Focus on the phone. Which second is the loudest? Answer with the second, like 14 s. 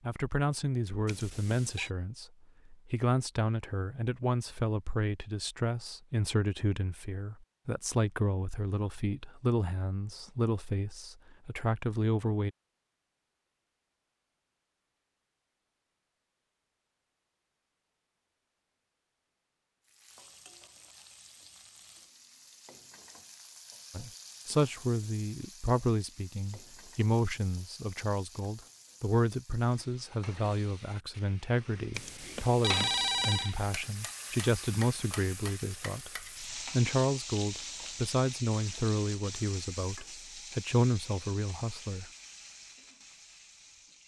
33 s.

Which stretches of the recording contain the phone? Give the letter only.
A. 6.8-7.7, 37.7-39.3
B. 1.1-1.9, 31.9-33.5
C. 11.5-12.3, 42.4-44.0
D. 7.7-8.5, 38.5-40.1
B.